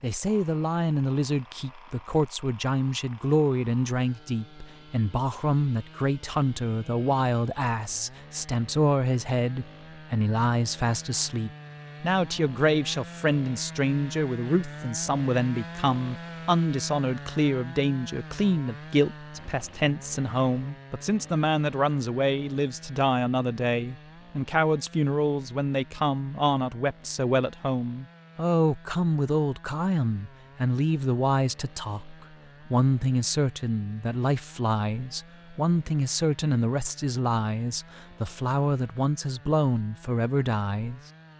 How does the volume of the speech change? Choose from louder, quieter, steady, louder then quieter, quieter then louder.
steady.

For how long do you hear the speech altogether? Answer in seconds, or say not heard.
41 s.